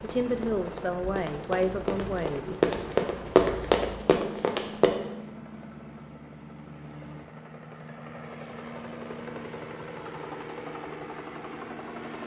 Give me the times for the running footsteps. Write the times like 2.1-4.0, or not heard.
0.2-4.9.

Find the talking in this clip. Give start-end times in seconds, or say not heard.
0.0-2.5.